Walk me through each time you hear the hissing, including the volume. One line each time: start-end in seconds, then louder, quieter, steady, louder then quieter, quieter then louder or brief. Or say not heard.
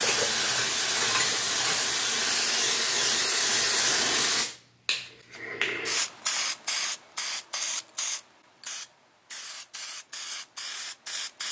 0.0-11.4 quieter.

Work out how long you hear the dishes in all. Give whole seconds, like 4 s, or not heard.
2 s.